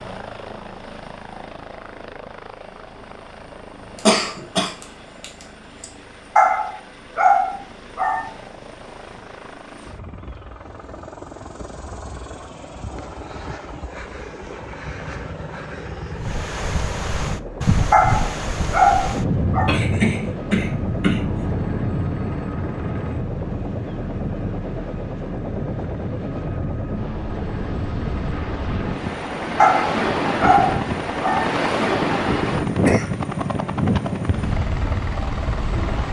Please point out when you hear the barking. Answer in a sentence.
You can hear the barking from 6.3 to 8.3 s, from 17.9 to 19.7 s and from 29.6 to 31.6 s.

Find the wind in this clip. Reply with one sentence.
The wind can be heard from 16.1 to 36.0 s.